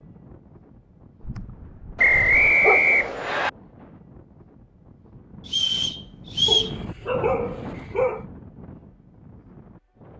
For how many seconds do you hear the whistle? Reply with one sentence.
You can hear the whistle for 3 seconds altogether.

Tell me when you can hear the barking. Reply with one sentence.
You can hear the barking from 1.2 to 3.0 s and from 6.5 to 8.2 s.